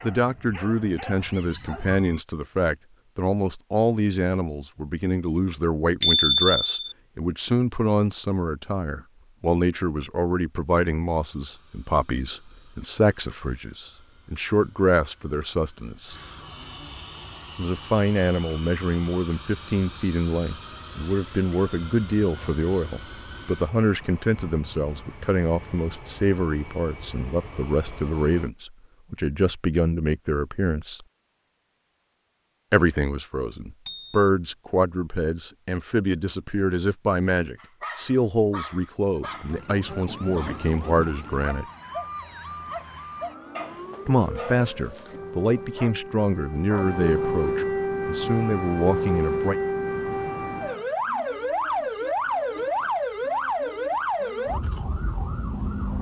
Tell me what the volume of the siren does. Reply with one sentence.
The loudness of the siren goes up.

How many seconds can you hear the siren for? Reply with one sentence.
You can hear the siren for 17 seconds altogether.